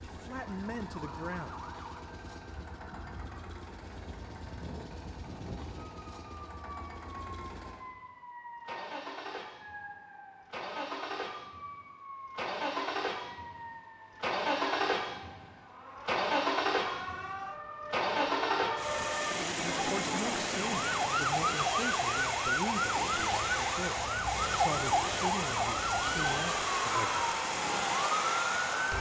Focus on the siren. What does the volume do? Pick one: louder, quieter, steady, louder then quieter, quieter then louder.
louder.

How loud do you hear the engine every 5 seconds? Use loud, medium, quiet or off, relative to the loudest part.
quiet, quiet, loud, loud, loud, loud.